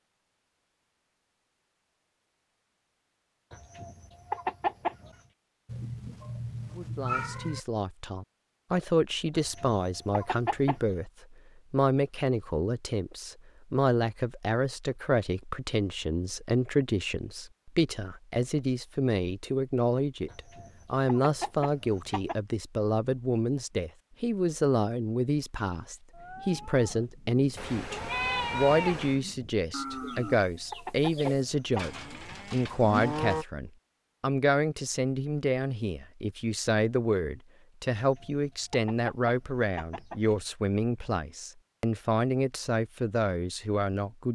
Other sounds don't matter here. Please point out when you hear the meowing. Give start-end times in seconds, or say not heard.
5.7-7.6, 27.6-29.2.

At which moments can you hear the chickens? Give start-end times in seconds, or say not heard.
3.5-5.2, 9.3-10.9, 20.3-22.4, 29.9-31.9, 38.0-40.5.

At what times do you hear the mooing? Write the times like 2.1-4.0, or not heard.
25.9-33.5.